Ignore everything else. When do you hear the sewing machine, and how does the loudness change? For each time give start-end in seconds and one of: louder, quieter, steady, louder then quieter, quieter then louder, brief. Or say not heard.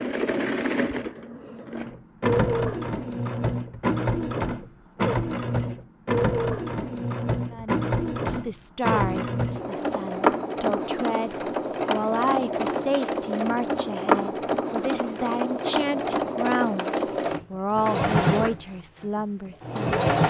0.0-20.2 steady.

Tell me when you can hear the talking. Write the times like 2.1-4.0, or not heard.
7.5-19.9.